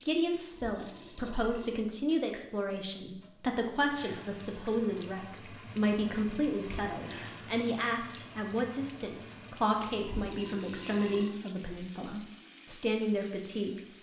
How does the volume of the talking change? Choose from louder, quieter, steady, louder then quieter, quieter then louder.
steady.